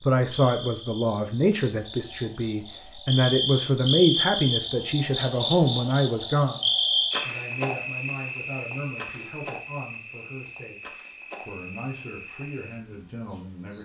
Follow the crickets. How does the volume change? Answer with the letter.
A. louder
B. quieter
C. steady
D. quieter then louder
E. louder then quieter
E.